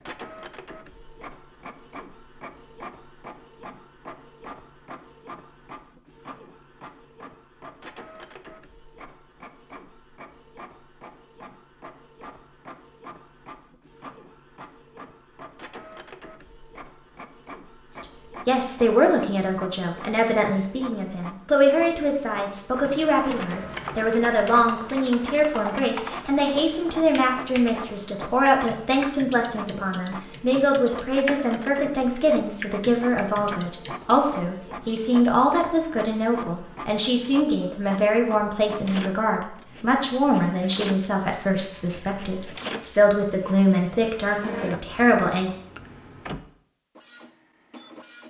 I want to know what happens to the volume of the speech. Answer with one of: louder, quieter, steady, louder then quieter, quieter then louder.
steady.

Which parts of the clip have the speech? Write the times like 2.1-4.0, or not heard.
17.9-45.5.